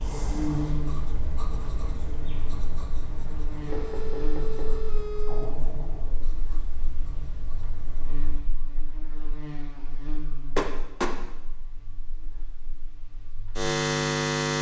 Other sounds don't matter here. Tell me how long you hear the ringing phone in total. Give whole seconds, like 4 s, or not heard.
2 s.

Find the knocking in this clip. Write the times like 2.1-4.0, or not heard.
3.7-4.8, 10.6-11.2.